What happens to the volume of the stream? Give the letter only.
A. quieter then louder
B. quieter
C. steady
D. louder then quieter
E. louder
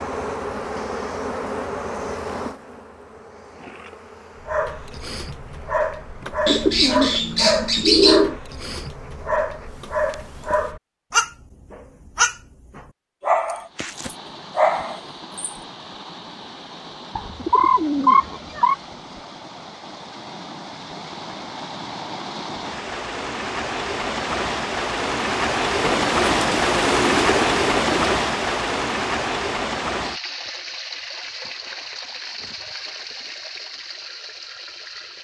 D.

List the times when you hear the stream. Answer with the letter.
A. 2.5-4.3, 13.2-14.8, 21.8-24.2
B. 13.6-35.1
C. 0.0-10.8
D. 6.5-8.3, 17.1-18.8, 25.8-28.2
B.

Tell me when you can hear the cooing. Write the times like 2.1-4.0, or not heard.
6.5-8.3, 17.1-18.8, 25.8-28.2.